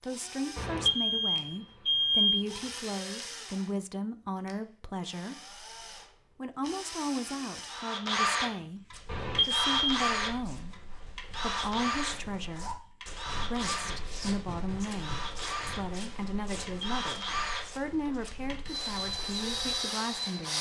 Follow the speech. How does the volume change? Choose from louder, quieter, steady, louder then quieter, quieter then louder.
steady.